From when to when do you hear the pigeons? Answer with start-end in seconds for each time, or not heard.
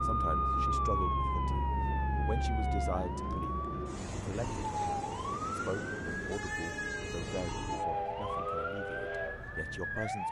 not heard.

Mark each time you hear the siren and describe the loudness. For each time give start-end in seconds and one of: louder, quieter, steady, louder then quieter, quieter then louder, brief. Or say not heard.
0.0-10.2 quieter.